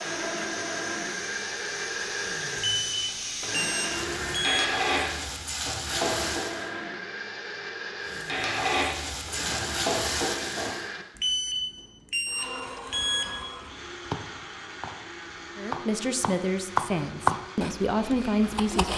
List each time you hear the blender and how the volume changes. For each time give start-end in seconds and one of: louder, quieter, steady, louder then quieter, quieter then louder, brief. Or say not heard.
0.0-18.8 quieter.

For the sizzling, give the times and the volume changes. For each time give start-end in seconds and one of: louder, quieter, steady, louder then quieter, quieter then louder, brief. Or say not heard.
0.0-6.7 louder
8.1-10.8 brief.